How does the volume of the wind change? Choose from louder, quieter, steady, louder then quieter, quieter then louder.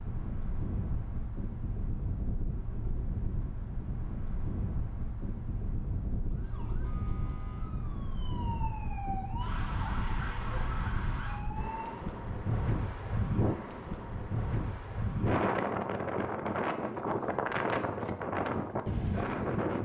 louder.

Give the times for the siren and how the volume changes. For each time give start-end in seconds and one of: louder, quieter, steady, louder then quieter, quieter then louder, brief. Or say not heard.
6.2-12.1 louder.